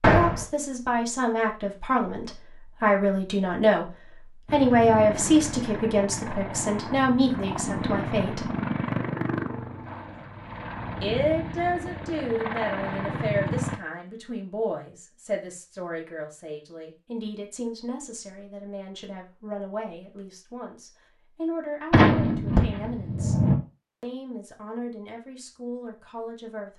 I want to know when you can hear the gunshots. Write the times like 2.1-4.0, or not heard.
0.0-0.5, 21.9-23.6.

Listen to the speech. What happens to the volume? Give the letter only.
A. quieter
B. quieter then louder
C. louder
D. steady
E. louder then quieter
A.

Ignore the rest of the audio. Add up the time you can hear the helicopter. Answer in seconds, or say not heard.
9 s.